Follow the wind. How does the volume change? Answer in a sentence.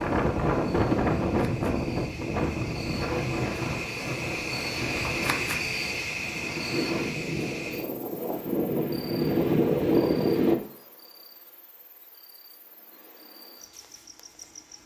The loudness of the wind goes down, then up.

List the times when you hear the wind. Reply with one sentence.
The wind can be heard from 0.0 to 10.6 s.